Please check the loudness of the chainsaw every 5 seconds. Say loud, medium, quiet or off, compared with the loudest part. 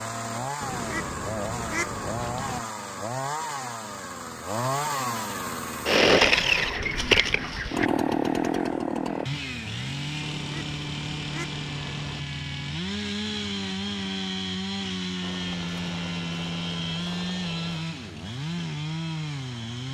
medium, loud, medium, medium.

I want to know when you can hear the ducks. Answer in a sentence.
The ducks can be heard from 0.6 to 2.6 s, from 6.1 to 7.9 s, from 10.2 to 12.2 s and from 15.2 to 17.9 s.